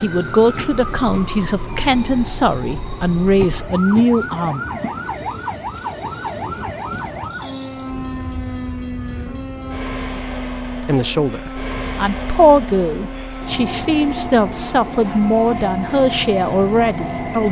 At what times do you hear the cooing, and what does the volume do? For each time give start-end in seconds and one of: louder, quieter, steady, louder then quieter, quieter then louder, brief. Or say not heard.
not heard.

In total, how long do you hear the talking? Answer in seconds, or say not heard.
11 s.